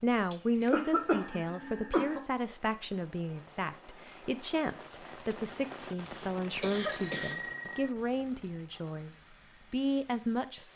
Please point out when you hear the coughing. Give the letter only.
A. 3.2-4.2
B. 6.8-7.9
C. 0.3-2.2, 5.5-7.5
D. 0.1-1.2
C.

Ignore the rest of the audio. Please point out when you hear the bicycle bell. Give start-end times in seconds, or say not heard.
6.8-7.9.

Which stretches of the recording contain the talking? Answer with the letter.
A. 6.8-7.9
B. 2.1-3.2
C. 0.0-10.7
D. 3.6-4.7
C.